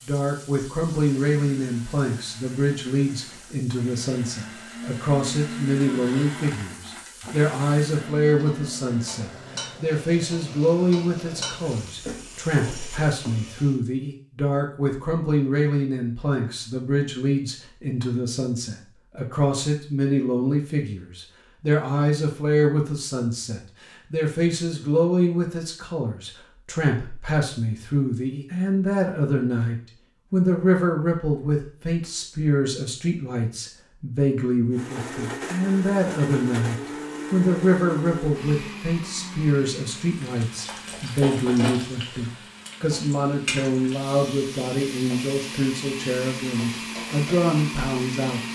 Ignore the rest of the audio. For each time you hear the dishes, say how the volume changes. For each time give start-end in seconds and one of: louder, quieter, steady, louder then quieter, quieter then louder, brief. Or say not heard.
not heard.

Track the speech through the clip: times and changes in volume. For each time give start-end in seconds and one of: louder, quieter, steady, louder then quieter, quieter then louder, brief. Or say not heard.
0.1-48.5 steady.